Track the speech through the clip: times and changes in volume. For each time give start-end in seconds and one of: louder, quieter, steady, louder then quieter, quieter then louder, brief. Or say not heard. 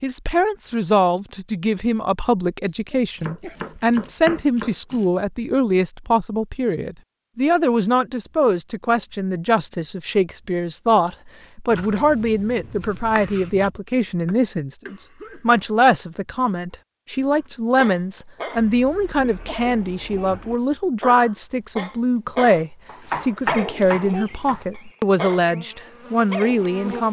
0.0-27.0 steady.